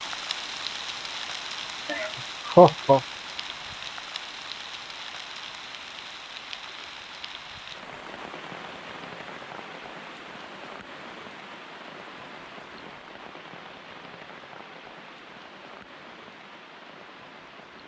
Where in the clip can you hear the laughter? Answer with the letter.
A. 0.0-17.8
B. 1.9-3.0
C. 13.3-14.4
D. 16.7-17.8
B.